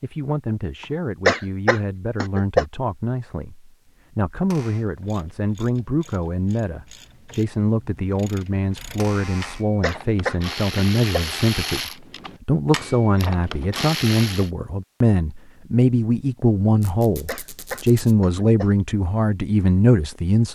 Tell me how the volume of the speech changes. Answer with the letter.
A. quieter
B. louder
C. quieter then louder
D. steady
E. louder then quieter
B.